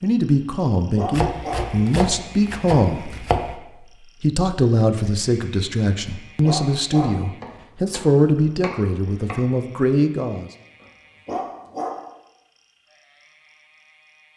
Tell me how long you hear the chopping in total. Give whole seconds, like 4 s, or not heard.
5 s.